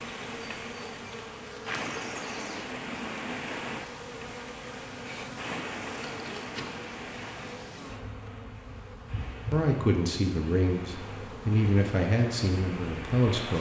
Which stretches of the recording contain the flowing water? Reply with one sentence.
You can hear the flowing water from 0.0 to 13.5 s.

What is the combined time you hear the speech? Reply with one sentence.
You can hear the speech for 4 seconds altogether.